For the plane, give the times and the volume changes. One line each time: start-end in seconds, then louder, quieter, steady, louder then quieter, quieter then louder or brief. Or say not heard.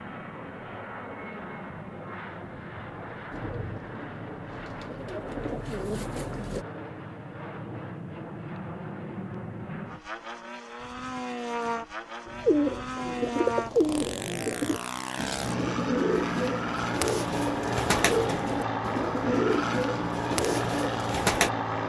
0.0-21.8 louder.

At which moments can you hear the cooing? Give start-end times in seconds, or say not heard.
3.3-6.7, 12.2-21.5.